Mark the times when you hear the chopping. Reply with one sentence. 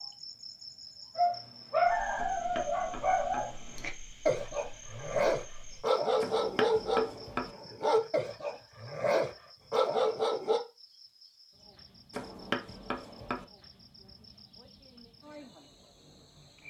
You can hear the chopping from 2.1 to 3.5 s, from 6.2 to 7.5 s and from 12.1 to 13.4 s.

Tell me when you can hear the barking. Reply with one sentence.
You can hear the barking from 1.1 to 10.6 s.